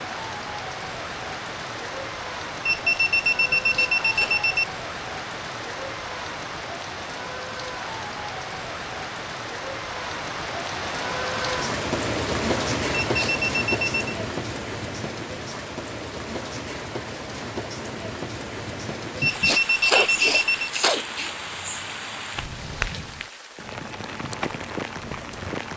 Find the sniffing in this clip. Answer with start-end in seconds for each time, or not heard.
3.5-4.4, 13.0-13.4, 19.1-21.4.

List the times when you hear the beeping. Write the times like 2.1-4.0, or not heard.
2.6-4.7, 13.0-13.9, 19.2-20.7.